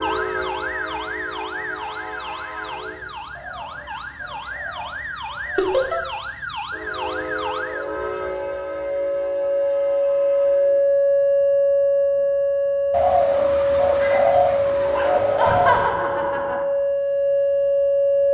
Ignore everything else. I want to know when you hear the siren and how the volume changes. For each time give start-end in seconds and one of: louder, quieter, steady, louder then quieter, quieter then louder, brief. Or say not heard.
0.0-18.2 louder.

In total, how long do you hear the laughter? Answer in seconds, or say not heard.
2 s.